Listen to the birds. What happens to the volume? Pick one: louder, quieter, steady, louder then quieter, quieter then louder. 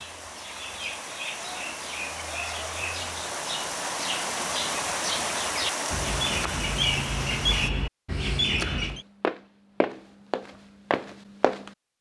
louder.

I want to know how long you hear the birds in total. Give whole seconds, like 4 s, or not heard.
9 s.